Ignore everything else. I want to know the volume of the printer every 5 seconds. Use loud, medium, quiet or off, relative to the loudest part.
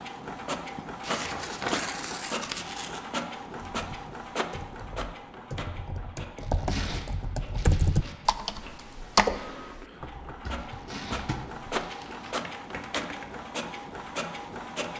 loud, medium, loud.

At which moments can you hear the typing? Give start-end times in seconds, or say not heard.
3.5-13.4.